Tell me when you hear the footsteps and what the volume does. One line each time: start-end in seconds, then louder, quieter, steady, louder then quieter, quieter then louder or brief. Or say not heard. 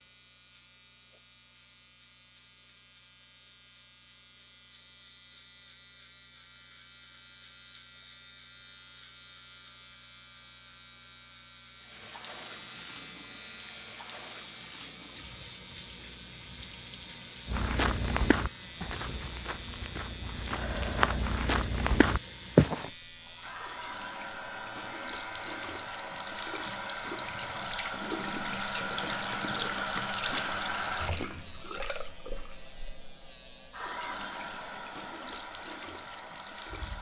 17.4-22.9 quieter then louder.